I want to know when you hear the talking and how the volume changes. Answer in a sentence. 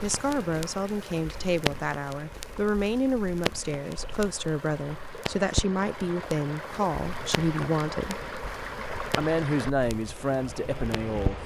The talking can be heard from 0.0 to 8.2 s, at a steady volume; and briefly from 9.2 to 11.4 s.